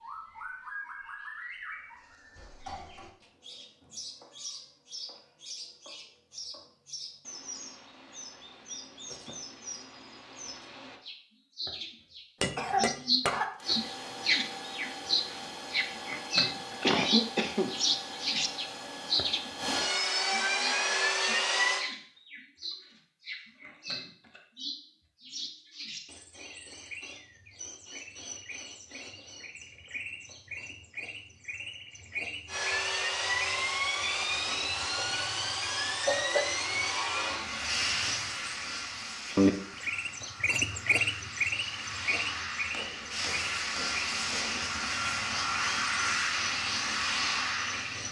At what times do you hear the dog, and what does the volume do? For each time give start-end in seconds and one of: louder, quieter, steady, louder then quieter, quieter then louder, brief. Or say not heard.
not heard.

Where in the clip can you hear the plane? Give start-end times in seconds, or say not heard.
13.6-21.9, 32.5-48.0.